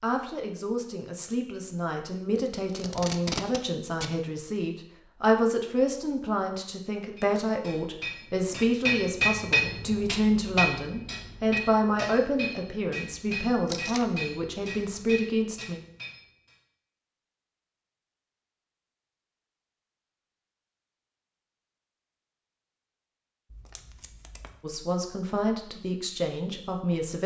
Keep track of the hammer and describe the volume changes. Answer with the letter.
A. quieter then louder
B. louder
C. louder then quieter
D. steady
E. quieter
E.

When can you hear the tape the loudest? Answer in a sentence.
The volume of the tape peaks at 3 seconds.